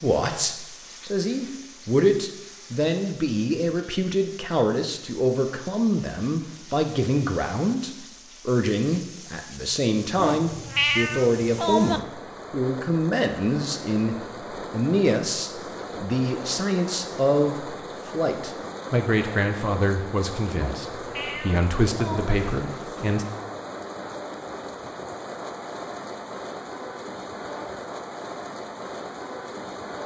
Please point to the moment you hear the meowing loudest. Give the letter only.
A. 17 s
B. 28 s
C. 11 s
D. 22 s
C.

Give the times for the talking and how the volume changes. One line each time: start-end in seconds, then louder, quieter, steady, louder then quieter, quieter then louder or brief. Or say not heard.
0.0-23.2 steady.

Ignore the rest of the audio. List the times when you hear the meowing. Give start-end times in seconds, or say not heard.
10.2-12.0, 20.6-22.4.